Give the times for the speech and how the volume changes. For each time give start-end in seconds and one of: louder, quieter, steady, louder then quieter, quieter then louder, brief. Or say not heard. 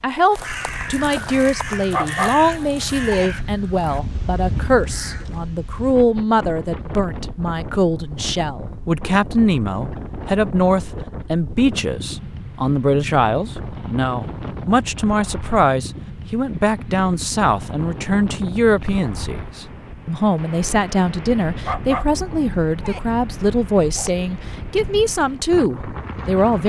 0.0-26.6 steady.